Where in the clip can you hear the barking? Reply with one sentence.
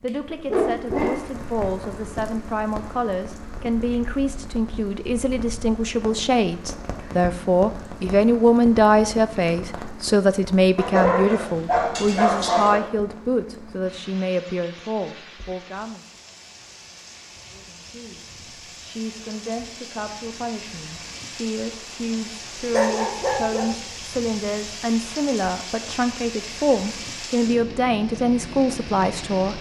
The barking can be heard from 0.5 to 1.2 s, from 10.8 to 12.8 s and from 22.7 to 23.7 s.